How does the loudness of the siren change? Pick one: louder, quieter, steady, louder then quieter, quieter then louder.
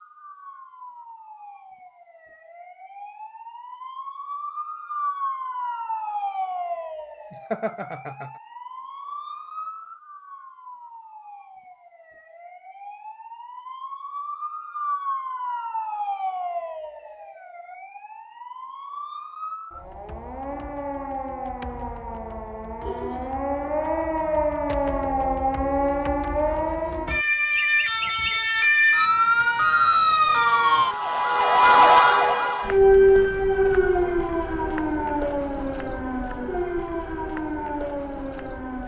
louder.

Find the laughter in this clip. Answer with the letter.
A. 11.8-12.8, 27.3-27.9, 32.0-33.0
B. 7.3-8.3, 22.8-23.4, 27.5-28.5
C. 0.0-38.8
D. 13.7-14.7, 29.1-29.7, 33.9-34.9
B.